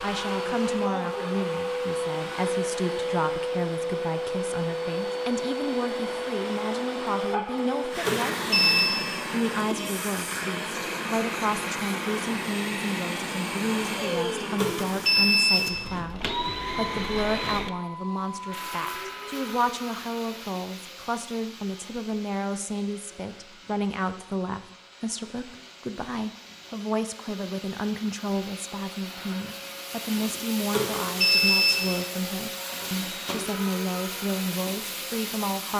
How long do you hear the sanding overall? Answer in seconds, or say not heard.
not heard.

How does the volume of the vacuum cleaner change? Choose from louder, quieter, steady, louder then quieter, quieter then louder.
quieter then louder.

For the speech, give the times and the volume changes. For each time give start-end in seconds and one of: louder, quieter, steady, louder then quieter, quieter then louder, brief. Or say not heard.
0.0-35.7 steady.